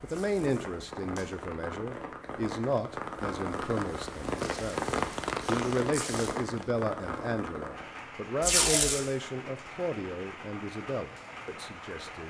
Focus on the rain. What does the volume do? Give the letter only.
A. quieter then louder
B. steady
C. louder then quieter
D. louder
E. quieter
C.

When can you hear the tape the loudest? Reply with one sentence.
The loudest moment of the tape is at 9 seconds.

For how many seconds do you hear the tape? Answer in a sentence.
The tape can be heard for 4 seconds in total.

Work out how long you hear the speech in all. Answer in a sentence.
The speech can be heard for 12 seconds in total.